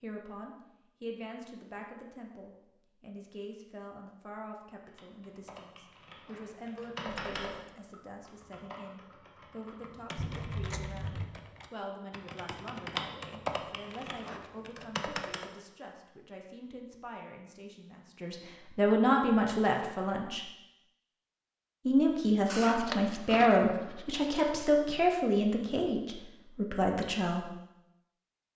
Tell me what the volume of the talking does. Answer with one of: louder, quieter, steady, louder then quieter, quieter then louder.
louder.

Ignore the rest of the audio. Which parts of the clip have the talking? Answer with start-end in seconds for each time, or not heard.
0.0-20.4, 21.9-27.5.